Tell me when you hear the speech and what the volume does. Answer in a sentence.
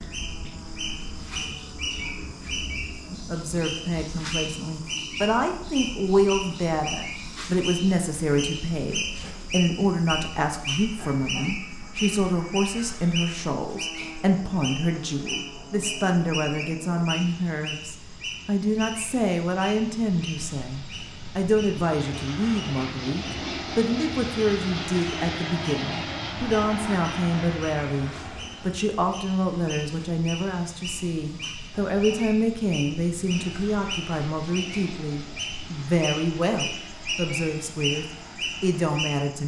You can hear the speech from 3.1 to 39.4 s, at a steady volume.